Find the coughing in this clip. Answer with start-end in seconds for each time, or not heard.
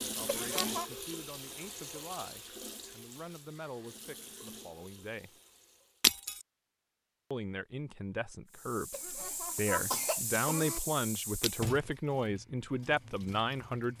0.2-0.8, 8.9-10.8.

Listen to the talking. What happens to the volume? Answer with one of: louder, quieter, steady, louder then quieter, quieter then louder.
louder.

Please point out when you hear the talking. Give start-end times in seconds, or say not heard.
0.0-5.4, 7.3-13.9.